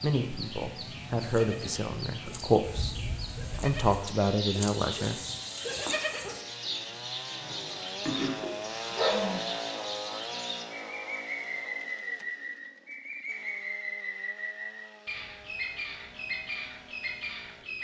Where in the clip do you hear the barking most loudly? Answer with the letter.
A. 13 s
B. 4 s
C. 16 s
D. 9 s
D.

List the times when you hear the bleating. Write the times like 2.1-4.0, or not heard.
1.1-6.4.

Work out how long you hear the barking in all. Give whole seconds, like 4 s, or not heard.
2 s.